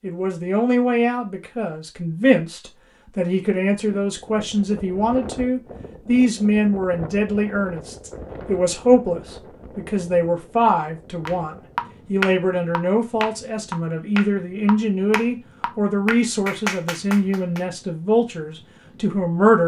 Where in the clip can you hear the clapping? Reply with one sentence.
You can hear the clapping from 11.2 to 17.6 s.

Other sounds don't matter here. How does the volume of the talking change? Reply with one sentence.
The volume of the talking stays about the same.